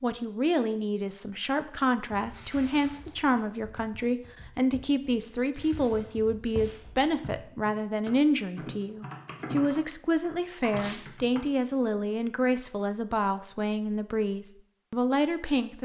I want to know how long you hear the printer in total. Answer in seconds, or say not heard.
not heard.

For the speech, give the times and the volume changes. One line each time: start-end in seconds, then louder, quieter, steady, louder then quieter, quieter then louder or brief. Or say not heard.
0.0-15.7 steady.